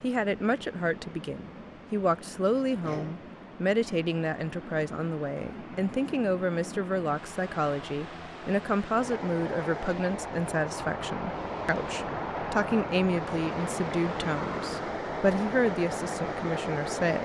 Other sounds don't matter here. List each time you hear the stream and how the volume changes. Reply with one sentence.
The stream can be heard from 0.0 to 17.1 s, getting louder.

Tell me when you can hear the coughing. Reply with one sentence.
The coughing can be heard from 2.7 to 3.2 s.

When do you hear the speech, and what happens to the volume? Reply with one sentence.
The speech can be heard from 0.0 to 17.1 s, at a steady volume.